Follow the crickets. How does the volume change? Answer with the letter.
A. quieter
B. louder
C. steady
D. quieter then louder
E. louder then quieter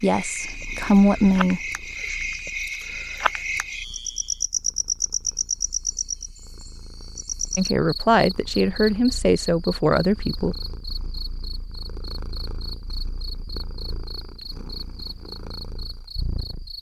A.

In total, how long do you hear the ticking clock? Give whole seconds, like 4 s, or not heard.
not heard.